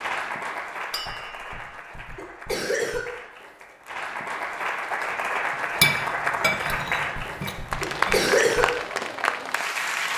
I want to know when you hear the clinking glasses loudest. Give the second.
6 s.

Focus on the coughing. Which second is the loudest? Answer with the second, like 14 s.
8 s.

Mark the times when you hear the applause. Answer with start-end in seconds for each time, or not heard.
0.0-10.1.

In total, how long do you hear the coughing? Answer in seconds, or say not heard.
4 s.